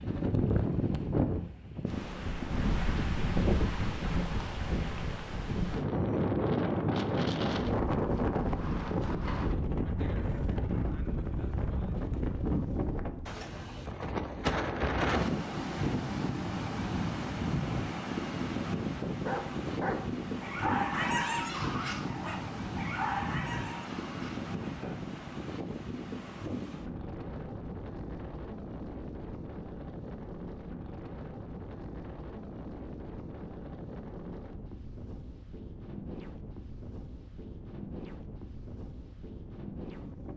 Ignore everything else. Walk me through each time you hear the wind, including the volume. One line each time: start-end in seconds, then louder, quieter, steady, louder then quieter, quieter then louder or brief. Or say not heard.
0.0-40.3 quieter.